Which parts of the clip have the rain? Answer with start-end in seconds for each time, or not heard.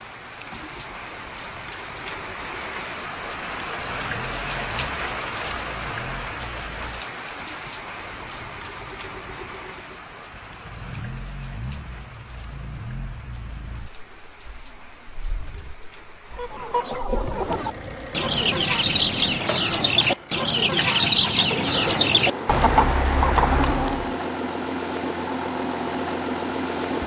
0.0-16.9.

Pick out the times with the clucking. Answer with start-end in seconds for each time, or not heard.
16.3-24.1.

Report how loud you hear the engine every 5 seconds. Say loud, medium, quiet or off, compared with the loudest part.
quiet, quiet, quiet, medium, loud, loud.